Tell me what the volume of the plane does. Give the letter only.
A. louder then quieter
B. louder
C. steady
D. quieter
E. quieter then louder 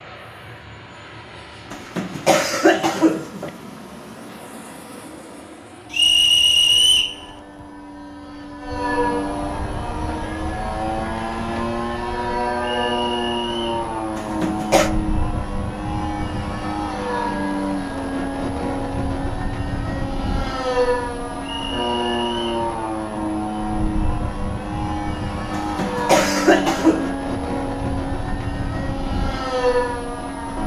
B.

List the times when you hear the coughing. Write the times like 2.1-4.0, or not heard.
1.7-3.5, 14.2-14.9, 25.6-27.1.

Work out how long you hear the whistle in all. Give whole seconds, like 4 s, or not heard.
4 s.